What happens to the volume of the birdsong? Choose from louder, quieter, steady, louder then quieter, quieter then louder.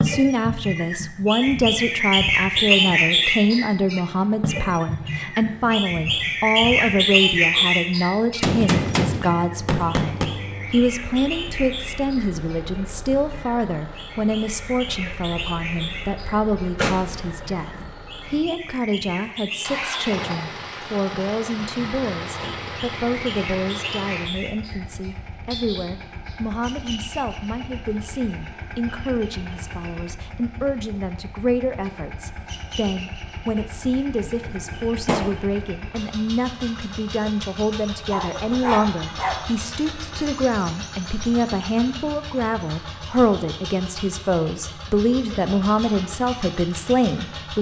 quieter.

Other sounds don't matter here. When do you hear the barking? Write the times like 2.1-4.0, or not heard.
37.9-39.5.